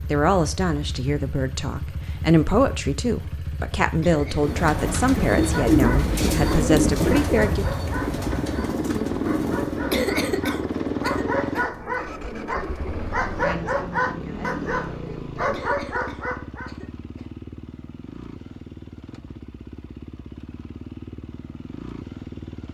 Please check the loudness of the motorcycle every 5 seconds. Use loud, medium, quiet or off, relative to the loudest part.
medium, loud, loud, medium, medium.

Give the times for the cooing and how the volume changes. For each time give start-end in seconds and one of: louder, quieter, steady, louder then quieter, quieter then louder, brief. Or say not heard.
4.3-15.5 quieter.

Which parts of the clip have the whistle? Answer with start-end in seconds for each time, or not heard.
not heard.